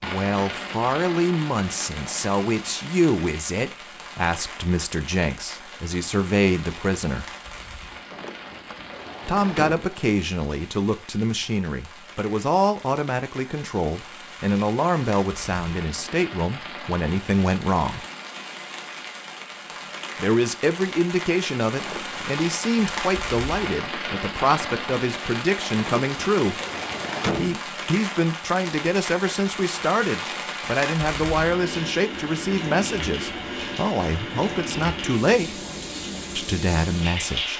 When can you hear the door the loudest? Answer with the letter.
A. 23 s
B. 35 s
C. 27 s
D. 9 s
C.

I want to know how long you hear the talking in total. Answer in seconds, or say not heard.
32 s.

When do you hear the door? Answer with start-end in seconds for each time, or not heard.
8.1-9.9, 21.8-22.4, 26.0-27.6.